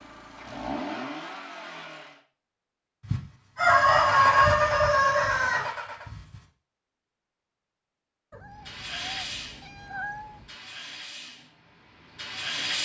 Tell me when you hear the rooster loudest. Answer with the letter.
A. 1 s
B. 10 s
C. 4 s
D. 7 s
C.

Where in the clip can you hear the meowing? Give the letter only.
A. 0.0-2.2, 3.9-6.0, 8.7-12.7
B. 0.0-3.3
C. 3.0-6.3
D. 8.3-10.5
D.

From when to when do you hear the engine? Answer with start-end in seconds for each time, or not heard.
0.0-2.2, 3.9-6.0, 8.7-12.7.